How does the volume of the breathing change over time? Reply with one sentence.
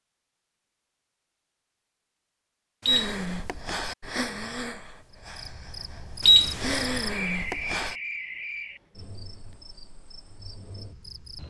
The volume of the breathing goes down, then up.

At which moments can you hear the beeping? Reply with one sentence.
The beeping can be heard from 2.9 to 3.4 s and from 6.2 to 6.8 s.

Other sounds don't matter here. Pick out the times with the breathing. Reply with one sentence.
The breathing can be heard from 2.9 to 8.0 s.